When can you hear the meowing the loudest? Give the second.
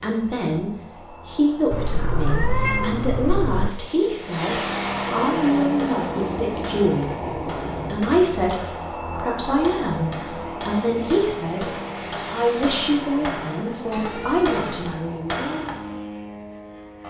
3 s.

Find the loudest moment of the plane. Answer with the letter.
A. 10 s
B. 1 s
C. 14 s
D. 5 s
D.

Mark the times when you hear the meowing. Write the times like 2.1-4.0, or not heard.
1.7-3.7, 13.9-14.9.